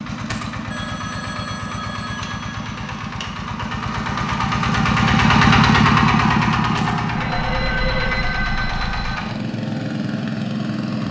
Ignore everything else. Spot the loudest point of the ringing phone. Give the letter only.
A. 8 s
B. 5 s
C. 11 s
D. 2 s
A.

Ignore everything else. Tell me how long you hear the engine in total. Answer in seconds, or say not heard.
11 s.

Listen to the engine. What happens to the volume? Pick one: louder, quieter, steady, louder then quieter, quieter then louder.
louder then quieter.